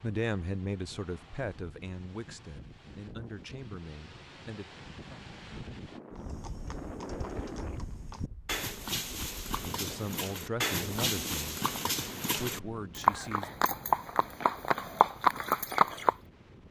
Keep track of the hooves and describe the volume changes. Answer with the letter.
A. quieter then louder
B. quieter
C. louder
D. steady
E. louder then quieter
C.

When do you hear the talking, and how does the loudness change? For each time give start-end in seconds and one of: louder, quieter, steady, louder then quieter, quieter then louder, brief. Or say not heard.
0.0-4.7 quieter
9.6-11.6 brief
12.3-13.5 brief.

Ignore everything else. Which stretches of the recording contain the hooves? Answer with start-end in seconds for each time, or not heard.
6.1-16.1.